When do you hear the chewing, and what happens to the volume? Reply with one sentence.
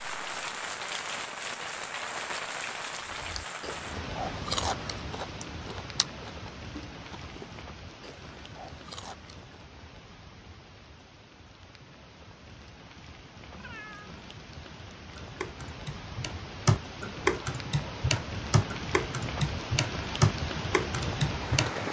You can hear the chewing from 3.0 to 9.4 s, getting quieter.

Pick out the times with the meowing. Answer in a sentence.
The meowing can be heard from 13.5 to 14.4 s.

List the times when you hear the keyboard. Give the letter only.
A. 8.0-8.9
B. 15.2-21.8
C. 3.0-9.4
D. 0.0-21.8
B.